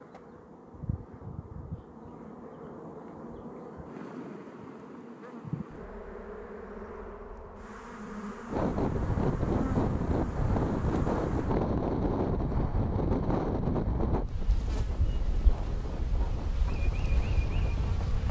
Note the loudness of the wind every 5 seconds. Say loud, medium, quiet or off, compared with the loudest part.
off, loud, loud, quiet.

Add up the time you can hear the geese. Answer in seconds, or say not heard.
not heard.